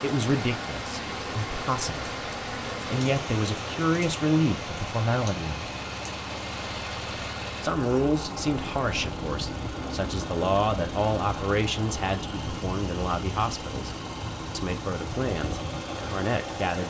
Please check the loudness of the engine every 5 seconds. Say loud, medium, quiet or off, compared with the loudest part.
medium, loud, loud, loud.